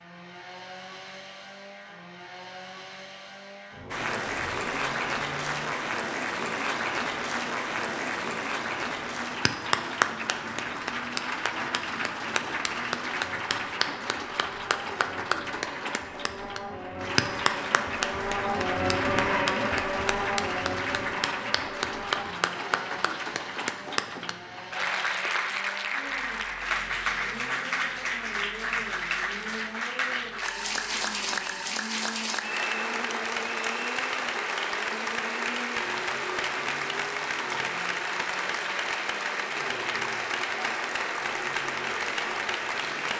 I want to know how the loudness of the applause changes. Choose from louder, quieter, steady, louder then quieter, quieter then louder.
steady.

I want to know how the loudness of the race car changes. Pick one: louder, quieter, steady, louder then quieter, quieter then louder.
louder then quieter.